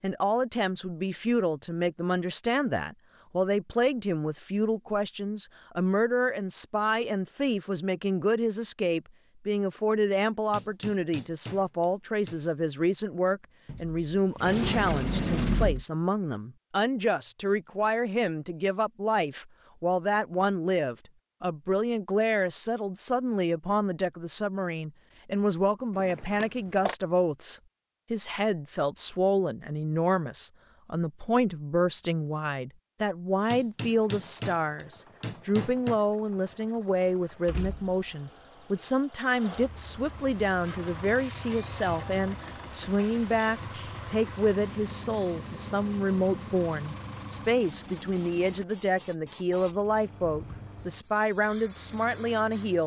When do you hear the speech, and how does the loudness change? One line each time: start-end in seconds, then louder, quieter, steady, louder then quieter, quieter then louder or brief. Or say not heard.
0.0-52.8 steady.